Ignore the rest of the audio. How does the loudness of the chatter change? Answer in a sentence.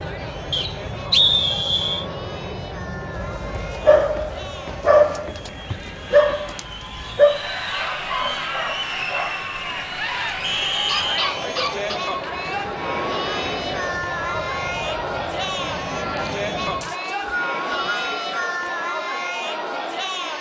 The volume of the chatter goes up.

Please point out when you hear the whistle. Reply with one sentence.
The whistle can be heard from 0.5 to 2.0 s, from 10.4 to 11.3 s and from 16.8 to 18.6 s.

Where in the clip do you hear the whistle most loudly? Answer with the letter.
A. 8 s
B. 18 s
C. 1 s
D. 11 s
C.